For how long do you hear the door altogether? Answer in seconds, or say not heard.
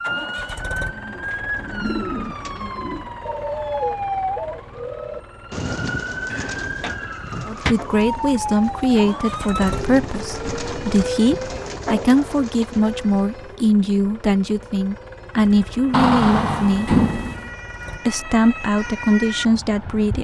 3 s.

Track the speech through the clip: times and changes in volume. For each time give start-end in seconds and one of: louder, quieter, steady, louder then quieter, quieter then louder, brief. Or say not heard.
7.5-16.9 steady
18.1-20.1 brief.